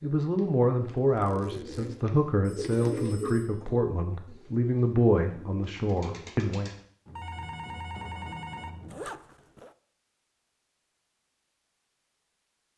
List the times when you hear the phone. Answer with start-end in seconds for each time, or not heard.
2.4-3.6, 7.0-9.0.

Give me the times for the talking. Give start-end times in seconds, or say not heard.
0.0-6.7.